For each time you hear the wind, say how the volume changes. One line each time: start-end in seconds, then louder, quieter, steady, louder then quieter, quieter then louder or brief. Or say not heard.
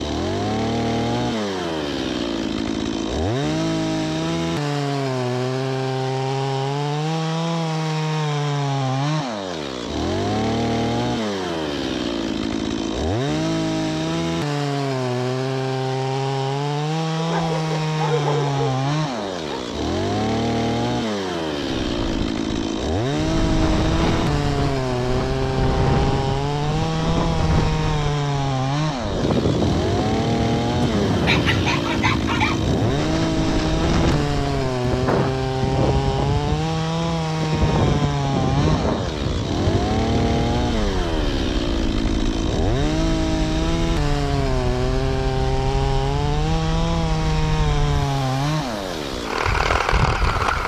21.6-50.6 quieter.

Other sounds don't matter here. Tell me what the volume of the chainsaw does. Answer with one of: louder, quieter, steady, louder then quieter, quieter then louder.
steady.